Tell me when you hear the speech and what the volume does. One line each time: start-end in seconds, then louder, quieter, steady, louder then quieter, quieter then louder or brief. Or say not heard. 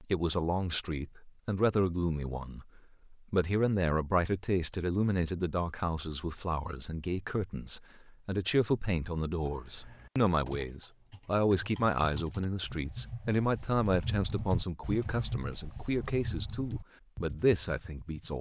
0.0-18.3 steady.